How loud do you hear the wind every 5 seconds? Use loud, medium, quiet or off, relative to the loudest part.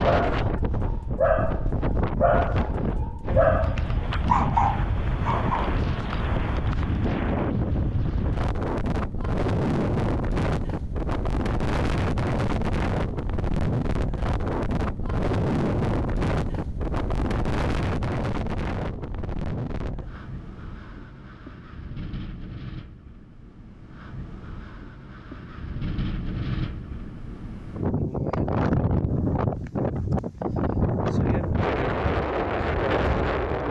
loud, loud, loud, loud, quiet, loud, loud.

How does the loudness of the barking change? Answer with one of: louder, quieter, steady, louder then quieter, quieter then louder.
quieter then louder.